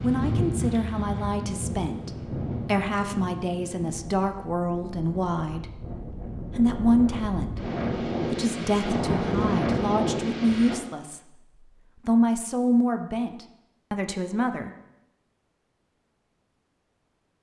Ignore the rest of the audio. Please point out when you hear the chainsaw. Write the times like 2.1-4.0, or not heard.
not heard.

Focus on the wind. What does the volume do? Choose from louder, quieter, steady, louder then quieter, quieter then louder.
quieter then louder.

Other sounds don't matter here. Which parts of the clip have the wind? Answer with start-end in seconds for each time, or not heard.
0.0-10.8.